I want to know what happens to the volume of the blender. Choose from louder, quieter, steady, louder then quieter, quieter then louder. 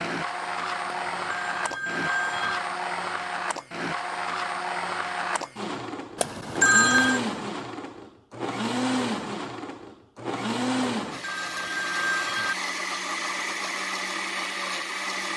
steady.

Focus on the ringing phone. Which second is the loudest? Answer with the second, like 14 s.
7 s.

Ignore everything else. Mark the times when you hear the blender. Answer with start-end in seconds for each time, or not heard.
0.0-15.3.